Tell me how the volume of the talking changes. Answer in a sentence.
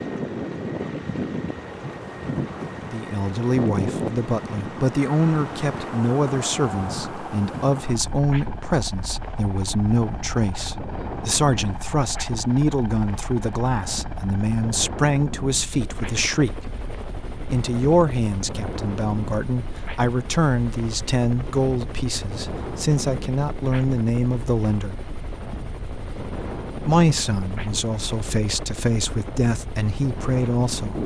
The loudness of the talking stays about the same.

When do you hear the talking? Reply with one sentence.
You can hear the talking from 2.9 to 16.6 s, from 17.5 to 24.9 s and from 26.9 to 31.0 s.